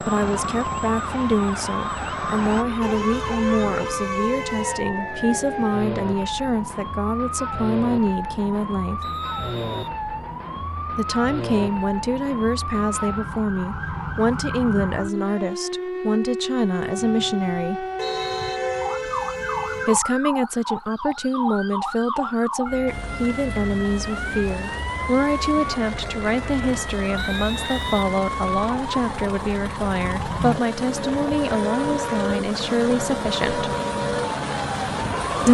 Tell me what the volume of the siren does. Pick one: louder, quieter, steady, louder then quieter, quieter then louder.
steady.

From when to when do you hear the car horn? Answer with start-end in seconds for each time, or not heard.
2.8-4.8, 17.9-20.0.